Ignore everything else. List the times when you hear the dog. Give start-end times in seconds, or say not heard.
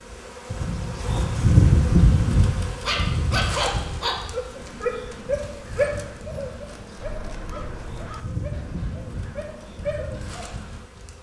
2.9-10.4.